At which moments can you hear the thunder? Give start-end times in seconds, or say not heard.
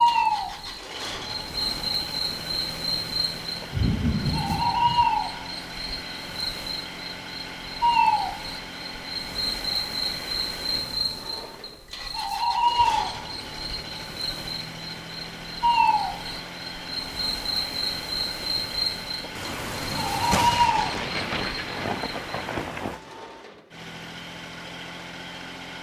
3.7-5.0, 19.4-23.0.